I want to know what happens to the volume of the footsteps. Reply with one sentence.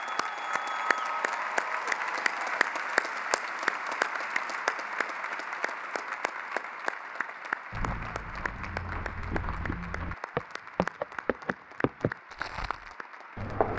The volume of the footsteps goes up, then down.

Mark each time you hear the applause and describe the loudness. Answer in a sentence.
The applause can be heard from 0.0 to 13.7 s, getting quieter.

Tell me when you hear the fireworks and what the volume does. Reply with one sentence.
The fireworks can't be heard in this clip.